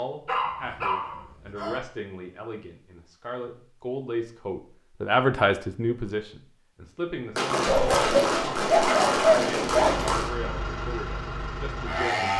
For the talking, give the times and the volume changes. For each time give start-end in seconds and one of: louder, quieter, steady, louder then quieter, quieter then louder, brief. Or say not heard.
0.0-12.3 louder then quieter.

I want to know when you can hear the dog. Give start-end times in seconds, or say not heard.
0.2-1.8, 7.7-10.0.